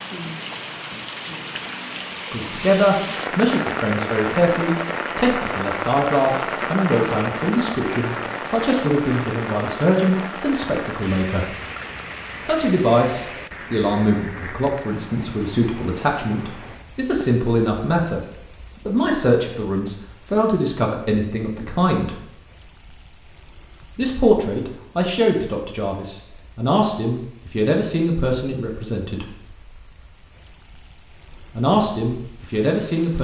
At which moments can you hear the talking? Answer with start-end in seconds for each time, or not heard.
2.3-11.5, 12.4-18.2, 18.9-22.1, 23.9-29.2, 31.5-33.1.